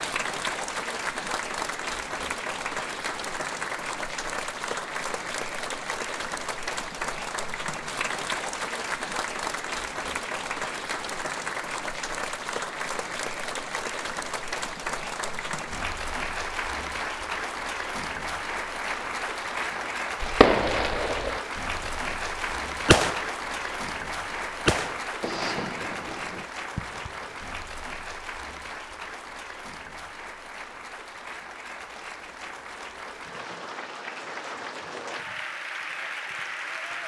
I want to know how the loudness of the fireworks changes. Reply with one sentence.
The loudness of the fireworks goes down.